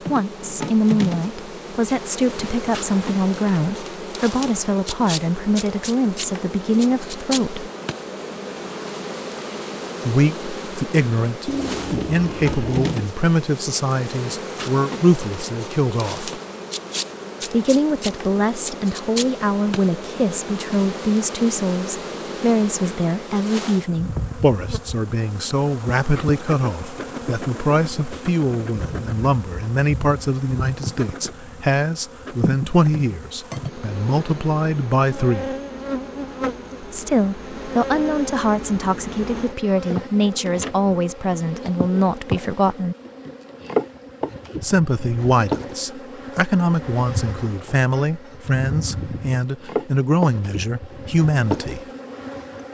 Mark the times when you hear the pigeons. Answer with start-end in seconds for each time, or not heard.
11.4-12.9.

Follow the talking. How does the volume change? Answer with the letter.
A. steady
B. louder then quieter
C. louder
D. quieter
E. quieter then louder
A.